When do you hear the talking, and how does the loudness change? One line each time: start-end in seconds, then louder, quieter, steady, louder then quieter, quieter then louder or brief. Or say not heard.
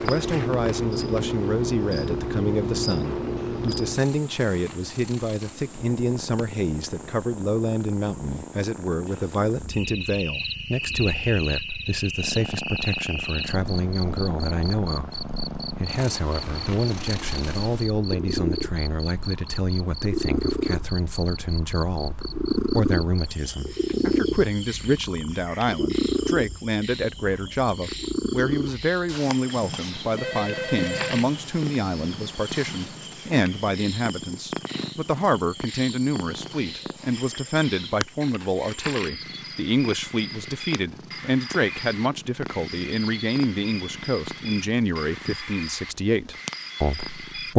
0.0-47.5 steady.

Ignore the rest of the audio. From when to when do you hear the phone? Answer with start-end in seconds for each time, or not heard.
30.0-31.2.